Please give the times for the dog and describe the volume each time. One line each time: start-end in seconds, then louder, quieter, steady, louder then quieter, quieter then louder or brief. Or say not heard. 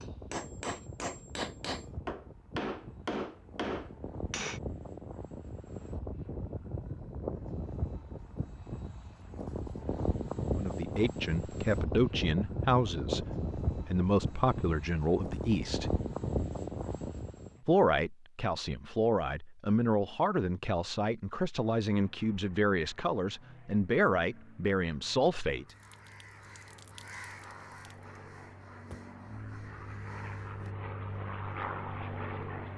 not heard.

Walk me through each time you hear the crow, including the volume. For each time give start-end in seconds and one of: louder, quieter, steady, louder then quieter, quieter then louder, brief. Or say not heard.
25.6-30.8 louder then quieter.